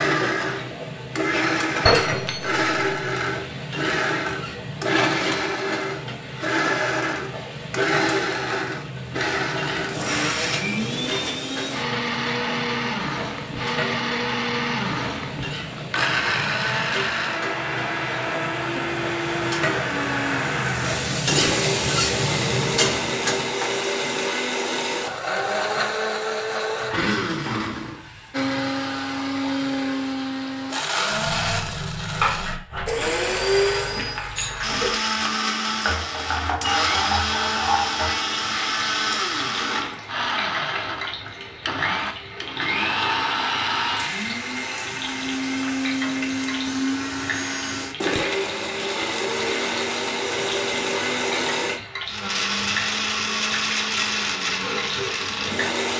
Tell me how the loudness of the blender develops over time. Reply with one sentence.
The loudness of the blender stays about the same.